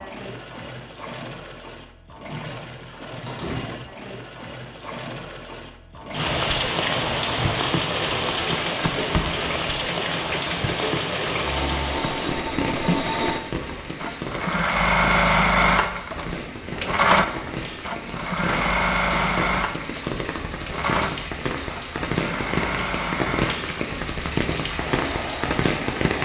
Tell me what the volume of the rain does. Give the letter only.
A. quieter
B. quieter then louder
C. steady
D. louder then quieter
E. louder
B.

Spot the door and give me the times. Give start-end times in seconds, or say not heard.
3.2-3.9.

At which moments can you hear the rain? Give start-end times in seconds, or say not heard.
6.1-26.2.